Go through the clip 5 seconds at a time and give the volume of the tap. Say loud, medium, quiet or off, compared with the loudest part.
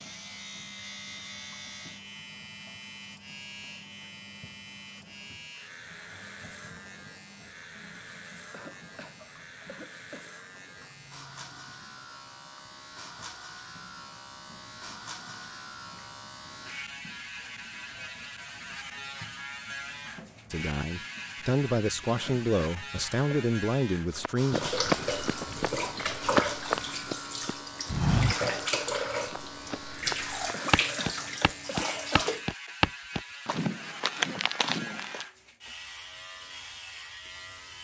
quiet, quiet, quiet, quiet, medium, loud, loud, off.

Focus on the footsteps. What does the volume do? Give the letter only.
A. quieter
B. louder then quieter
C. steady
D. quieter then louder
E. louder
C.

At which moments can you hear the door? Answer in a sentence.
You can't hear the door here.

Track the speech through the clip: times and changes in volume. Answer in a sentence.
You can hear the speech from 20.5 to 24.6 s, at a steady volume.